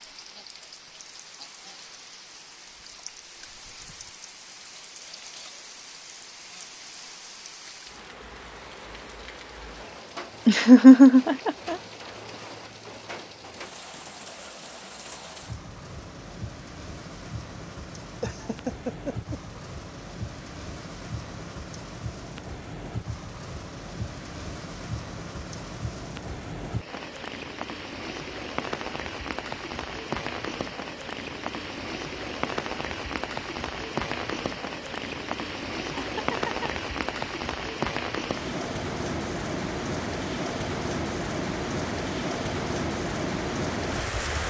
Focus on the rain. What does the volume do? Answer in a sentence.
The volume of the rain goes up.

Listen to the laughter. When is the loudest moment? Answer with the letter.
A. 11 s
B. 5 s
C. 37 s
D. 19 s
A.